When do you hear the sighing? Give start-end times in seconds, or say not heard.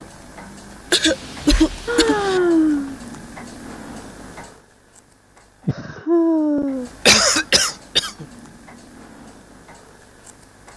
1.9-3.0, 5.7-6.9.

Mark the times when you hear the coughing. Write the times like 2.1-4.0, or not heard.
0.9-2.4, 7.0-8.2.